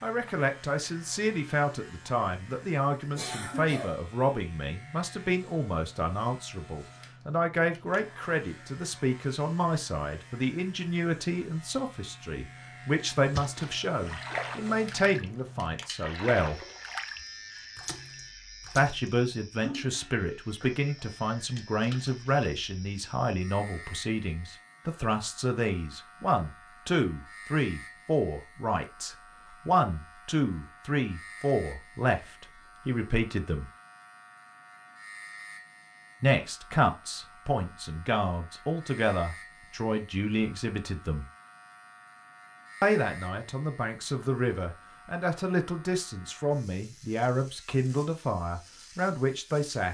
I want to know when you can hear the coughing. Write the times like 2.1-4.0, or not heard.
3.1-4.0.